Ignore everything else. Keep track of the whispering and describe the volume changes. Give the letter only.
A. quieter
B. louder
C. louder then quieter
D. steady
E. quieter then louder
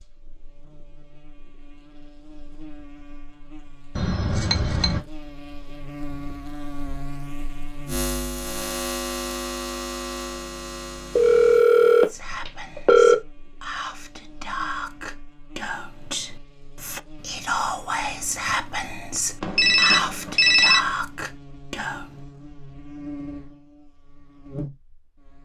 B.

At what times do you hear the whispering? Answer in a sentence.
You can hear the whispering from 12.1 to 22.2 s.